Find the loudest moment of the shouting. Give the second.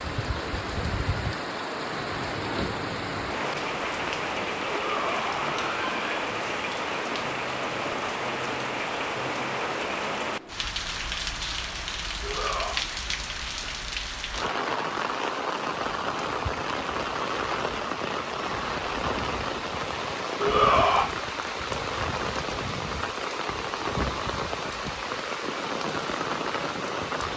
21 s.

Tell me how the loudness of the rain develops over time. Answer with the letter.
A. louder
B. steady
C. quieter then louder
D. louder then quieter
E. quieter
B.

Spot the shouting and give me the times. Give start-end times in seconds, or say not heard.
4.7-6.0, 12.2-12.8, 20.4-21.1.